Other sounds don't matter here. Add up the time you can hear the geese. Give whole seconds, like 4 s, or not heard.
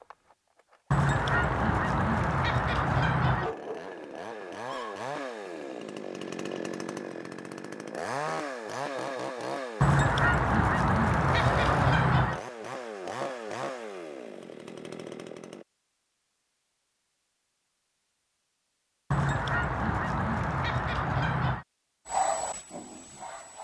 8 s.